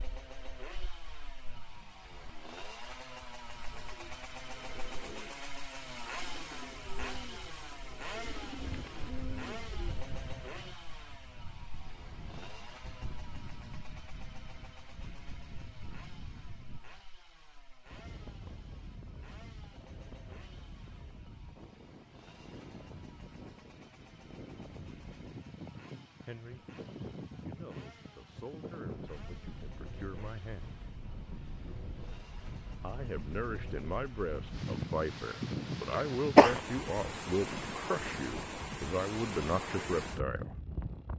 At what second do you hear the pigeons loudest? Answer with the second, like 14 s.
9 s.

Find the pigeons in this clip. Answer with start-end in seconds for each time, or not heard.
3.8-10.0.